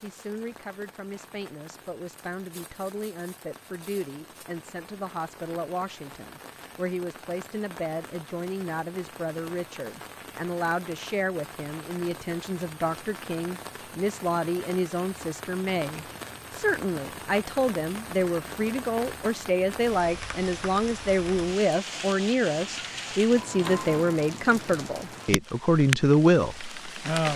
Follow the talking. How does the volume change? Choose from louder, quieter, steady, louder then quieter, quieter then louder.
louder.